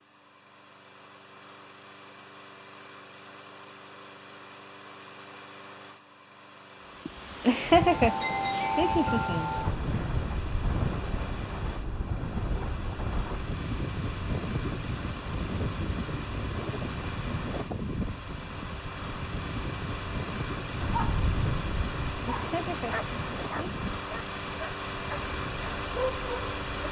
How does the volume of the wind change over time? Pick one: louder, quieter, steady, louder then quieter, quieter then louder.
quieter.